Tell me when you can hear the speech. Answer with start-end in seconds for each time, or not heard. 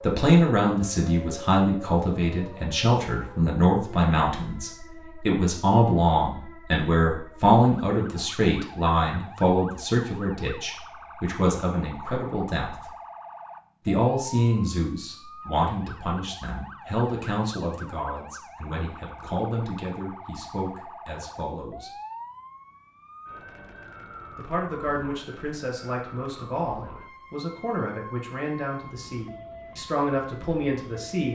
0.0-12.9, 13.8-21.9, 24.4-31.2.